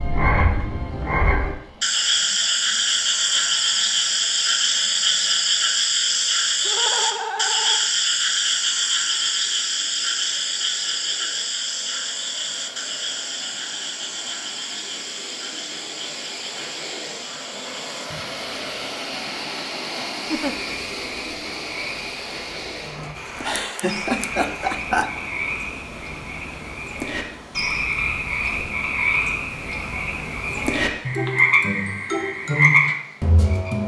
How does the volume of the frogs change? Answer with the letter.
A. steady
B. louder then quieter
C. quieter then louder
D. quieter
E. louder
C.